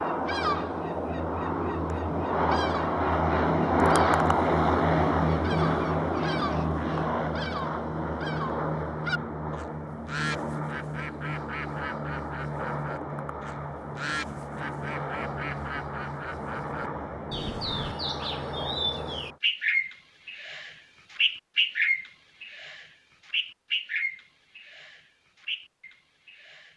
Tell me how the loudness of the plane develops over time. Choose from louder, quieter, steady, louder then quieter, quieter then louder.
quieter.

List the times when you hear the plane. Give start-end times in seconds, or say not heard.
0.0-19.4.